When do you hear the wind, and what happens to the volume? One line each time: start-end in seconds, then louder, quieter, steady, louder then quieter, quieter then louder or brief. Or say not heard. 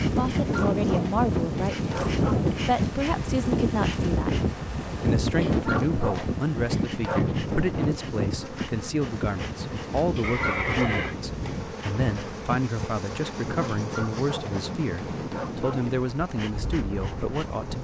0.0-17.7 quieter.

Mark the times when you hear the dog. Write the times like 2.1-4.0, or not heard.
0.4-2.5, 5.4-7.2, 10.2-11.6, 13.8-15.9.